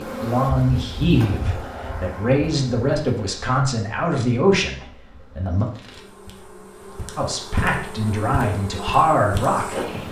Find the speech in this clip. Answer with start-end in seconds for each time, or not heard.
0.0-5.7, 7.2-9.9.